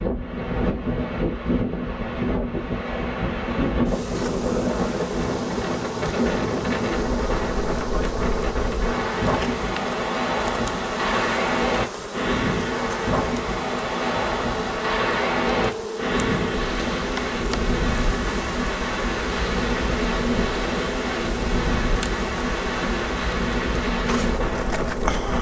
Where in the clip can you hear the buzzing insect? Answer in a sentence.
You can hear the buzzing insect from 3.5 to 25.3 s.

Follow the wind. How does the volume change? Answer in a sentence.
The loudness of the wind stays about the same.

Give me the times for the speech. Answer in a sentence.
The speech can't be heard in this clip.